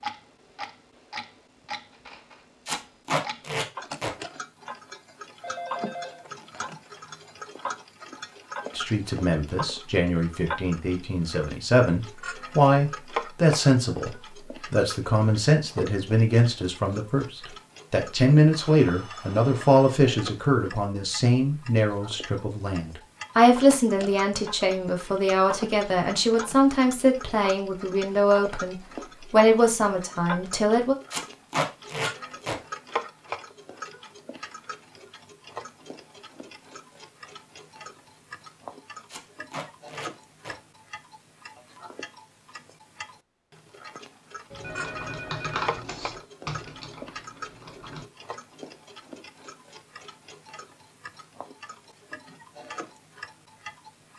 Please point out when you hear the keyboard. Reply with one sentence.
You can hear the keyboard from 44.6 to 48.0 s.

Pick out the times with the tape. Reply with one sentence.
The tape can be heard from 2.6 to 4.1 s, from 31.1 to 32.5 s and from 39.1 to 40.5 s.